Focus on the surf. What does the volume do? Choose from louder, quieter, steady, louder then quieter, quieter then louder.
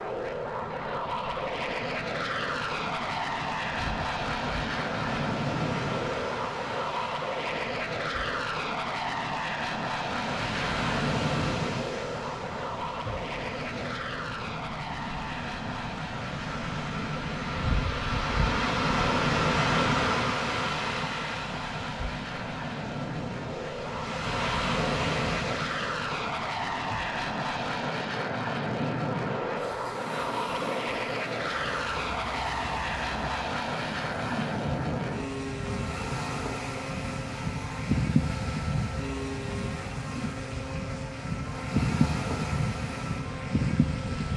louder then quieter.